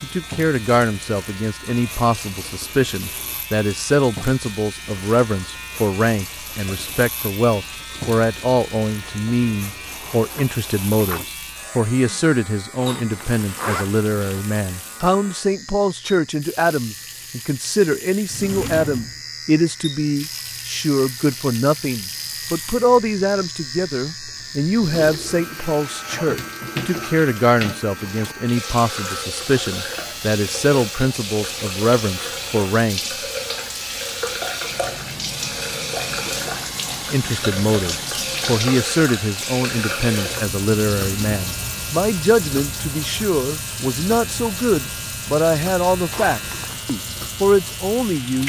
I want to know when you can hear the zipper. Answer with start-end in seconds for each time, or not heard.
12.8-14.4, 46.1-46.9.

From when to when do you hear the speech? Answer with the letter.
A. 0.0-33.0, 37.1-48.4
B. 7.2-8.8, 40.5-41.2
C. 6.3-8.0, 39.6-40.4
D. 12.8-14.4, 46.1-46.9
A.